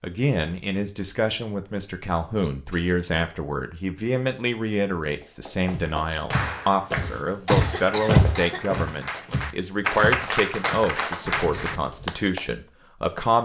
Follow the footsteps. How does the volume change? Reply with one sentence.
The loudness of the footsteps goes up, then down.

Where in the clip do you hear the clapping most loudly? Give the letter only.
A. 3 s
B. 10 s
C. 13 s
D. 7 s
B.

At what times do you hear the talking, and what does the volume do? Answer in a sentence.
The talking can be heard from 0.0 to 13.4 s, at a steady volume.